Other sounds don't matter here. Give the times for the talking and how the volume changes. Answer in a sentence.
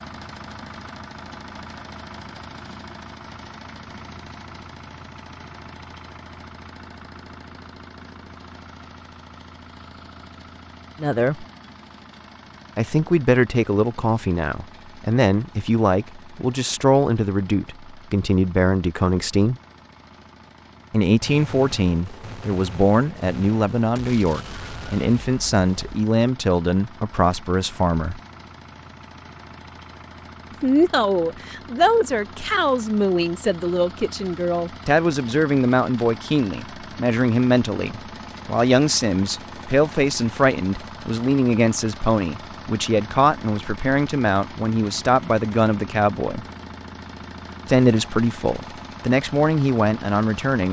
The talking can be heard briefly from 11.0 to 11.4 s; from 12.8 to 19.6 s, at a steady volume; from 20.9 to 28.2 s, at a steady volume; from 30.5 to 46.5 s, at a steady volume; and briefly from 47.6 to 50.6 s.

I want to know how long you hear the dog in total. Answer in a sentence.
The dog can't be heard in this clip.